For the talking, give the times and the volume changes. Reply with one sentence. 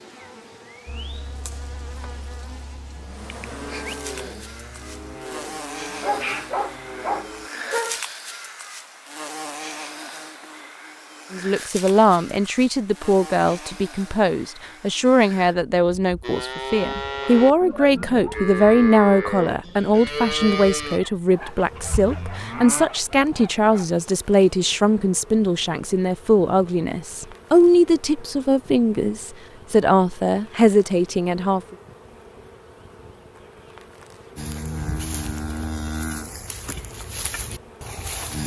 You can hear the talking from 11.3 to 31.8 s, at a steady volume.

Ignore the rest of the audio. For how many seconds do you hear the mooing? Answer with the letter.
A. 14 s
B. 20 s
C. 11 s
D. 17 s
D.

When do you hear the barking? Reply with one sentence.
The barking can be heard from 6.0 to 8.0 s and from 20.9 to 23.9 s.